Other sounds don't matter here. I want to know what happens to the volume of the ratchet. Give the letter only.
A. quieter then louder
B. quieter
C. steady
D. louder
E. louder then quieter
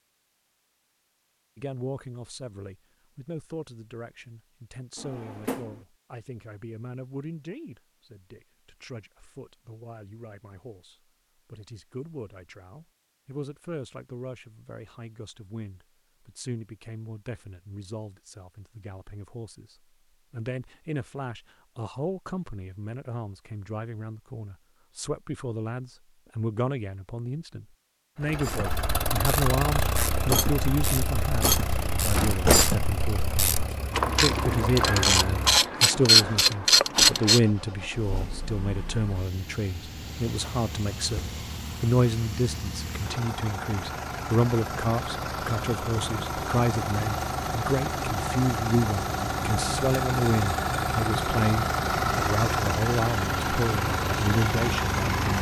D.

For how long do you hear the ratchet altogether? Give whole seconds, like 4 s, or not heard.
9 s.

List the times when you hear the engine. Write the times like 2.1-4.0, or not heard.
28.2-55.3.